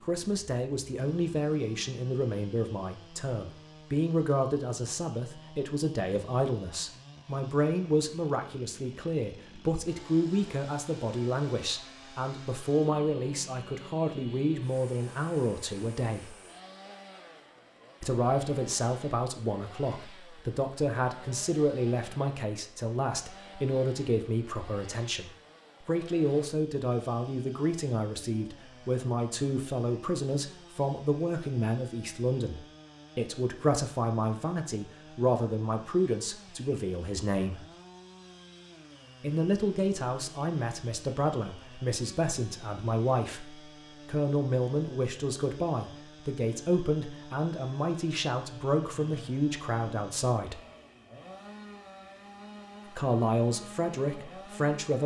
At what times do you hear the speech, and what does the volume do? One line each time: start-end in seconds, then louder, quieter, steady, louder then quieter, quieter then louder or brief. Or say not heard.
0.0-16.4 steady
18.0-37.6 steady
39.2-50.6 steady
52.9-55.0 brief.